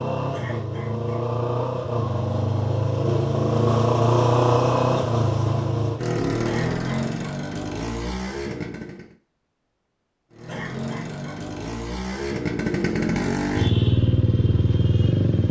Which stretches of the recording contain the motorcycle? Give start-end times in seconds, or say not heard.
0.0-9.2, 10.3-15.4.